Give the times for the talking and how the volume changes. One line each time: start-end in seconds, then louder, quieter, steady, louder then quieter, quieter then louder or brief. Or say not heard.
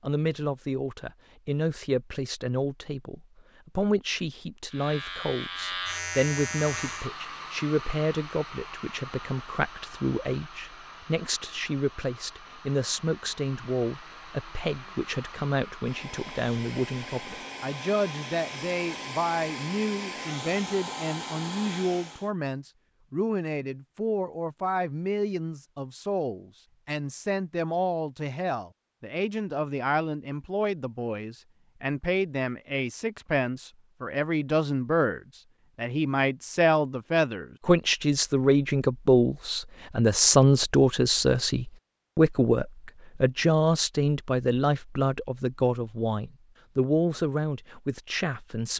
0.0-48.7 louder.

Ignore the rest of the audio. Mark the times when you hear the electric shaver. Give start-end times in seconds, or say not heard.
4.7-7.1.